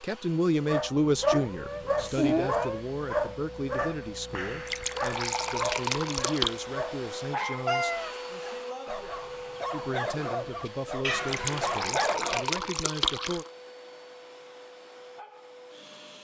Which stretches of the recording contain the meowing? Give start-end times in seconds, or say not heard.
1.3-2.9, 7.7-8.1, 11.0-11.8.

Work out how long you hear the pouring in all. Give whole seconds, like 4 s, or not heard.
4 s.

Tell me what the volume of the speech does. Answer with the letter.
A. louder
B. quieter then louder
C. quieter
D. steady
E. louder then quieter
C.